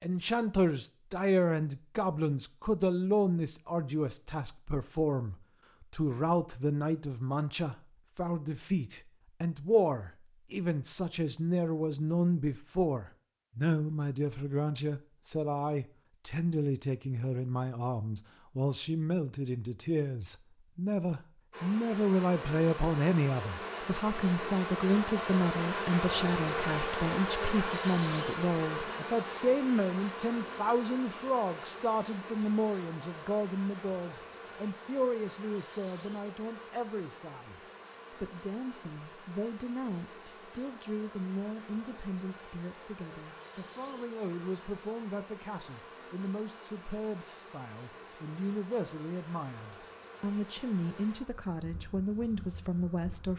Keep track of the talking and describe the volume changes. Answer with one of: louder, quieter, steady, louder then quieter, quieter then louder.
quieter.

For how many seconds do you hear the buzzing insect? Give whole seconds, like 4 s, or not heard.
32 s.